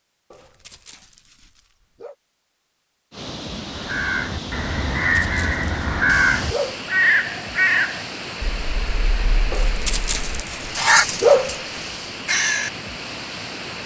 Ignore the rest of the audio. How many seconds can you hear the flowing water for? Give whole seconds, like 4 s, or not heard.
11 s.